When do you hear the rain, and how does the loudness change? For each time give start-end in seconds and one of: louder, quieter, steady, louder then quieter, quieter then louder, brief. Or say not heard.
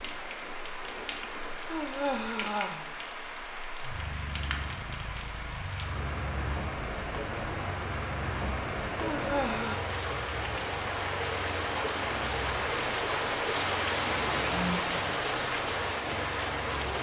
0.0-16.9 louder.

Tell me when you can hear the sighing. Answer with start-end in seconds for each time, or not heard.
1.7-2.9, 9.0-9.8, 14.4-14.9.